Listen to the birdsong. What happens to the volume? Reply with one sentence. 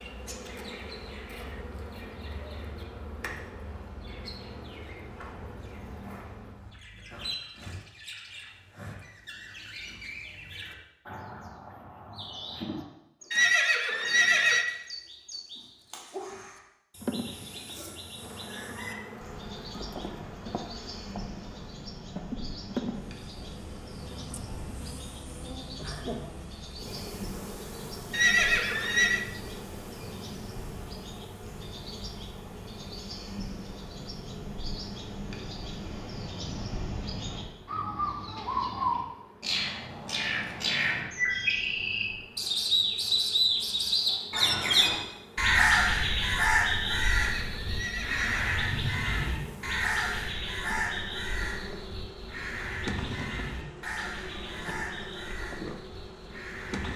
The loudness of the birdsong goes up.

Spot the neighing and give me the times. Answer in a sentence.
The neighing can be heard from 13.3 to 14.7 s, from 28.1 to 29.2 s and from 47.0 to 48.5 s.